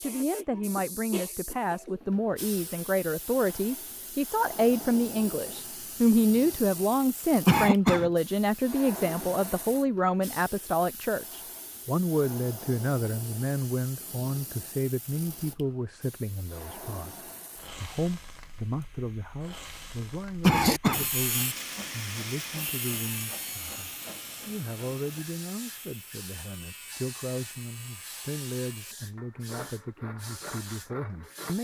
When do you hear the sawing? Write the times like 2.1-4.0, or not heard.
20.4-31.5.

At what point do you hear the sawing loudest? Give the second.
21 s.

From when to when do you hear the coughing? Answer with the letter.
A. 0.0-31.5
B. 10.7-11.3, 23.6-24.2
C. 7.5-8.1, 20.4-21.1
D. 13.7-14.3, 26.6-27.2
C.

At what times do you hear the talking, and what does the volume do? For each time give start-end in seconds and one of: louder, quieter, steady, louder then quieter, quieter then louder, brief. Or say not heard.
0.0-31.5 quieter.